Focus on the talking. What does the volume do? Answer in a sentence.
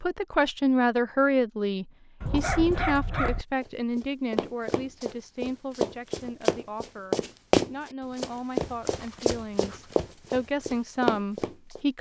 The volume of the talking goes down, then up.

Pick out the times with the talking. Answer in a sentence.
You can hear the talking from 0.0 to 11.9 s.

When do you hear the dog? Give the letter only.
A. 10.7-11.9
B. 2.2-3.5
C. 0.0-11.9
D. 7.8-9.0
B.